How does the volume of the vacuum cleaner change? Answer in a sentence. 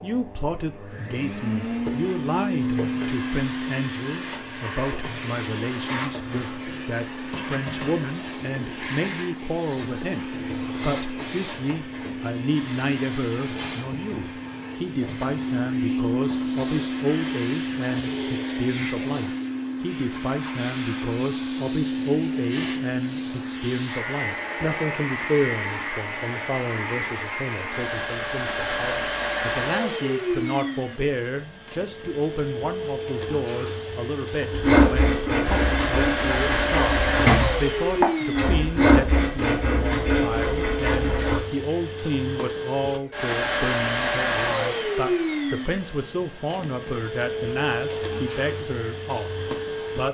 The loudness of the vacuum cleaner stays about the same.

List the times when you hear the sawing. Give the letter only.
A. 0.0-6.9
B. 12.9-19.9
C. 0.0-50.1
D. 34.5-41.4
D.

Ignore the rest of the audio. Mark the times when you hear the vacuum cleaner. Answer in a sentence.
The vacuum cleaner can be heard from 0.0 to 50.1 s.